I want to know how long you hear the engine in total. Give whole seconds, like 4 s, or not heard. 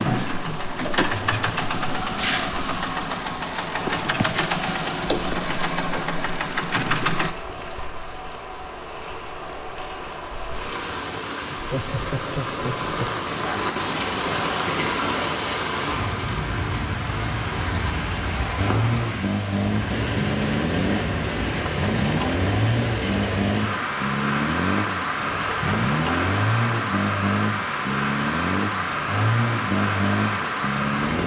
20 s.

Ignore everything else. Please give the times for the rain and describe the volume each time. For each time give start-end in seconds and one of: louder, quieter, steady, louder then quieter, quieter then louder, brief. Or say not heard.
0.1-31.2 louder.